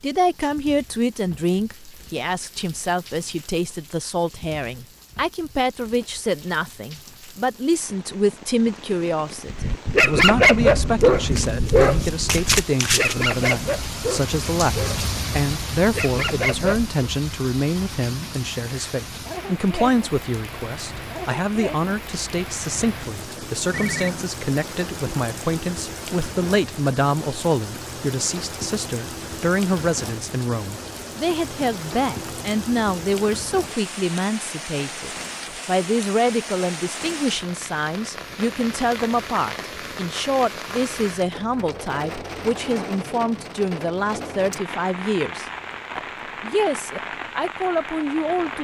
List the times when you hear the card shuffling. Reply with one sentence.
The card shuffling can be heard from 11.0 to 13.3 s.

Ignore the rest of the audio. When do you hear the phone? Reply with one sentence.
You can hear the phone from 23.7 to 24.4 s.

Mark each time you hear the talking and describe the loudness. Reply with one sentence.
You can hear the talking from 0.0 to 48.5 s, at a steady volume.